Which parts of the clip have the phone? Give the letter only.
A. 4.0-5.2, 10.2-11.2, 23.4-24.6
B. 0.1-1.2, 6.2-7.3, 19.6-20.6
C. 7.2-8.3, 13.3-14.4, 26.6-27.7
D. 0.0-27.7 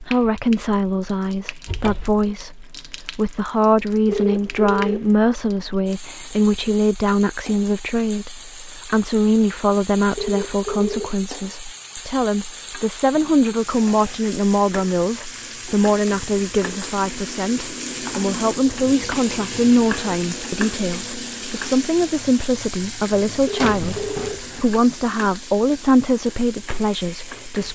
A.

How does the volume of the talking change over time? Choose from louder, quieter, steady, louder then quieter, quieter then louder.
steady.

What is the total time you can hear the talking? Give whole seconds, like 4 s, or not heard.
28 s.